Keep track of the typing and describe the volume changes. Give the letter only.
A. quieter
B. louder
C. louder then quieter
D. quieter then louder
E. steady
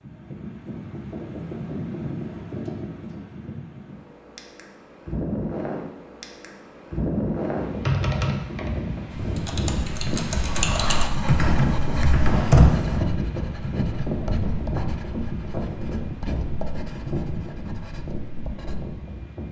D.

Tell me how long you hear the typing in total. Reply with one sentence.
The typing can be heard for 5 seconds in total.